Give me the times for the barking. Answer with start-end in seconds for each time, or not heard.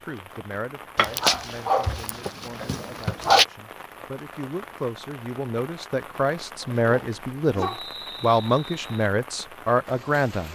0.9-3.5, 6.2-7.9.